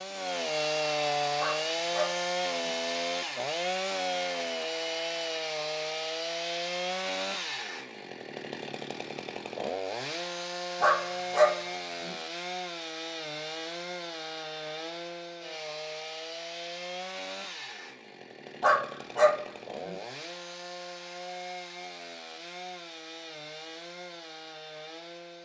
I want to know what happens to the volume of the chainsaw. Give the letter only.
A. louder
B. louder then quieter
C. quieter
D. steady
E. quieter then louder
C.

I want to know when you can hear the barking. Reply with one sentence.
You can hear the barking from 1.4 to 2.7 s, from 10.8 to 12.2 s and from 18.6 to 19.9 s.